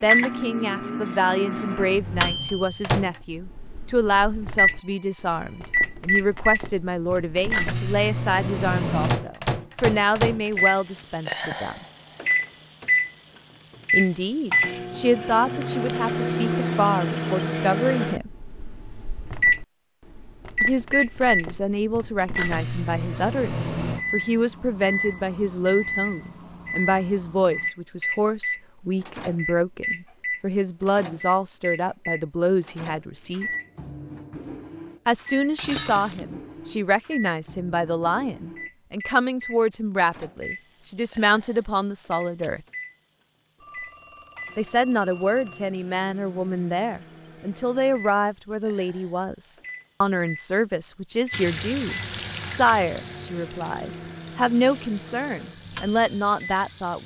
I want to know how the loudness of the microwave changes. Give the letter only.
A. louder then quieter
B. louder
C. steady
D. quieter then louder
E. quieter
E.